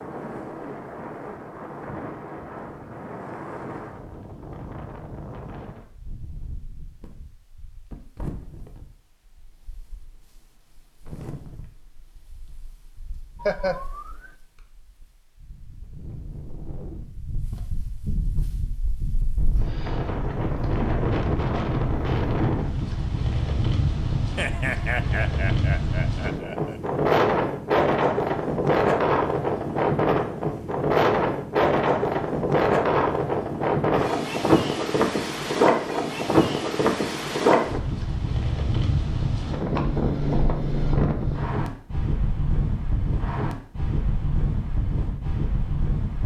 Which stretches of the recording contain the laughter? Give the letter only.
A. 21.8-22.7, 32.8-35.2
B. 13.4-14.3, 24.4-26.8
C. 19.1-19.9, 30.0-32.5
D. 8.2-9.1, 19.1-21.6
B.